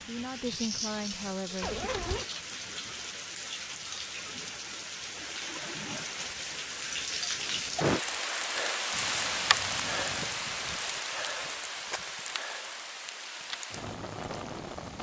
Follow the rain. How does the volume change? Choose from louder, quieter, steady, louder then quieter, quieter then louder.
louder then quieter.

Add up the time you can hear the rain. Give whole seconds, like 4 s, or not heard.
15 s.